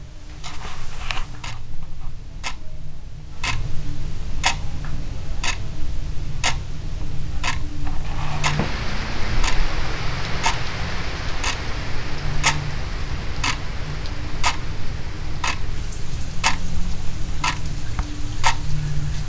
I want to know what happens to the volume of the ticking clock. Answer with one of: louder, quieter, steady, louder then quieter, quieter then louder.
louder.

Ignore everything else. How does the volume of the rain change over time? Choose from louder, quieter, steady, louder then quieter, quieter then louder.
quieter.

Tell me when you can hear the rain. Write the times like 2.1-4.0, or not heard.
8.2-19.2.